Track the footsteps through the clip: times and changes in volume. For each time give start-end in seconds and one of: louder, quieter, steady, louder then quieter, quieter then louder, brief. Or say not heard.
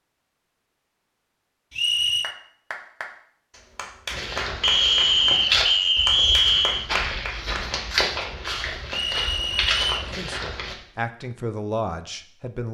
4.1-10.8 quieter then louder.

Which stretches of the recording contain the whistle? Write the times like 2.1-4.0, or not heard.
1.7-2.4, 4.6-6.8, 8.9-10.1.